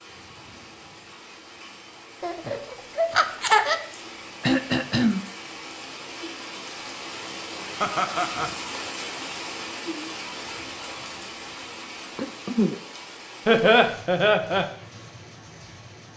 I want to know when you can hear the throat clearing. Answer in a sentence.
The throat clearing can be heard from 4.4 to 5.2 s and from 12.2 to 12.8 s.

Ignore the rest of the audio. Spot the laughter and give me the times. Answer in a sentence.
You can hear the laughter from 2.2 to 3.8 s, from 7.8 to 8.5 s and from 13.4 to 14.7 s.